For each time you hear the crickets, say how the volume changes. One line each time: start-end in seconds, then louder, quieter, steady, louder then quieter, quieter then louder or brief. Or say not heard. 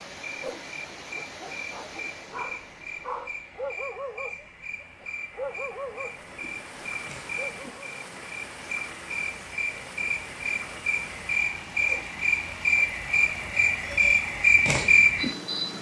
0.0-15.7 louder.